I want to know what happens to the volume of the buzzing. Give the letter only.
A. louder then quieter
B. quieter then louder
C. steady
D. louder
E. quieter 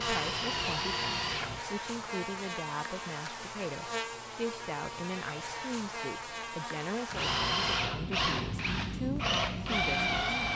C.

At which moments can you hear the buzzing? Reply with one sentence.
You can hear the buzzing from 0.0 to 10.5 s.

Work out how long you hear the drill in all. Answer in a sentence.
The drill can be heard for 5 seconds in total.